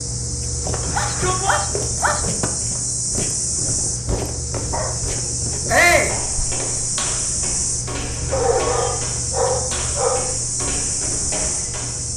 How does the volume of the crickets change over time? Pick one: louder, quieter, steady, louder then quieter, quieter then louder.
steady.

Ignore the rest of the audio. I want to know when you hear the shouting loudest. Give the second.
6 s.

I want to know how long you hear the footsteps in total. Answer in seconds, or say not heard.
12 s.